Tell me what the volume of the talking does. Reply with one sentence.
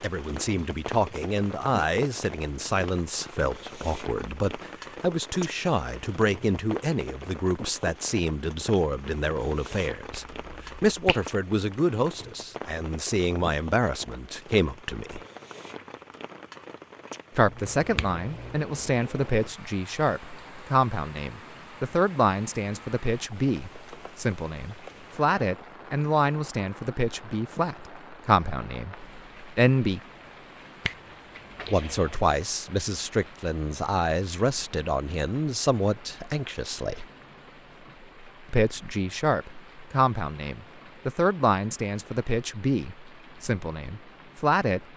The volume of the talking stays about the same.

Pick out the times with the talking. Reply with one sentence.
You can hear the talking from 0.0 to 15.2 s, from 17.4 to 30.0 s, from 31.7 to 37.0 s and from 38.5 to 44.8 s.